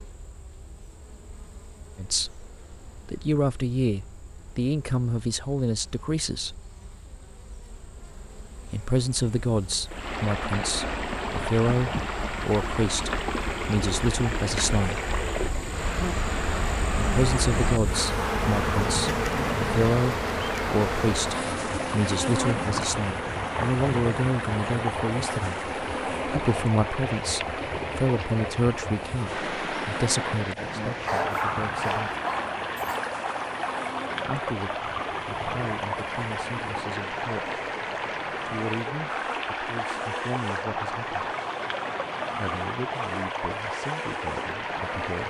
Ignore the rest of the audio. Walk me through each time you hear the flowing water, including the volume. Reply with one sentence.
The flowing water can be heard from 9.8 to 45.2 s, at a steady volume.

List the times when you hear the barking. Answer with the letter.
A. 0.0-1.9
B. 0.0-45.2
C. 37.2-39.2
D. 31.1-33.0
D.